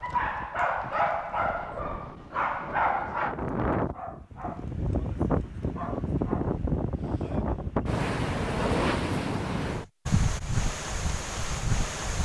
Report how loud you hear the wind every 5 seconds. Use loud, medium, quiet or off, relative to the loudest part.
medium, loud, loud.